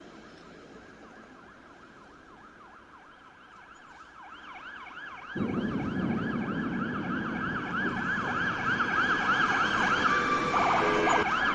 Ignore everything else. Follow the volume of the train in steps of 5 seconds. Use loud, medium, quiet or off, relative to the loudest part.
off, loud, medium.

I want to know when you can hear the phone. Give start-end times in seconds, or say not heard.
not heard.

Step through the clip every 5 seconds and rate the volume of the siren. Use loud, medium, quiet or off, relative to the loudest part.
quiet, medium, loud.